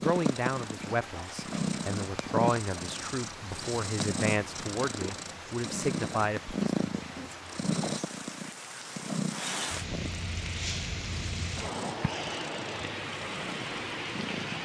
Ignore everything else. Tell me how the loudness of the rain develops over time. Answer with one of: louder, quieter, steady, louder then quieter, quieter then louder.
louder.